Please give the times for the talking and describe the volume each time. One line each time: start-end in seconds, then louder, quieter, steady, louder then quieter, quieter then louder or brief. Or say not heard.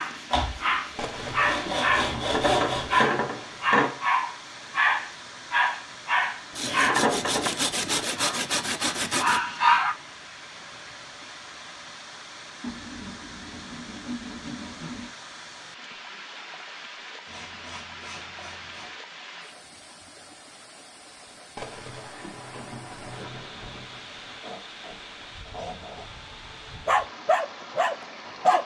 not heard.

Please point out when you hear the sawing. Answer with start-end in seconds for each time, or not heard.
0.3-3.1, 6.5-9.4, 12.6-15.1, 17.2-18.9, 24.4-26.1.